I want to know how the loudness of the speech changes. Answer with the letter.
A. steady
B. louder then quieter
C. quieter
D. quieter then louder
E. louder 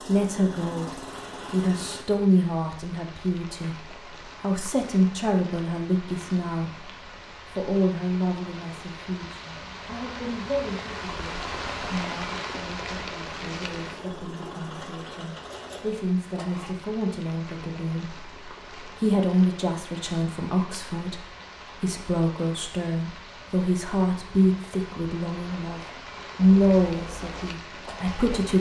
D.